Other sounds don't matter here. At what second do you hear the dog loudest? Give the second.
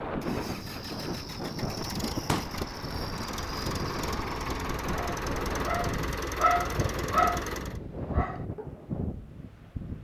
7 s.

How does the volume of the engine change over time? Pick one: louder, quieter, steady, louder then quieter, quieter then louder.
louder.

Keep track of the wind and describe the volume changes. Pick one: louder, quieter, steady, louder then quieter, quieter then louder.
steady.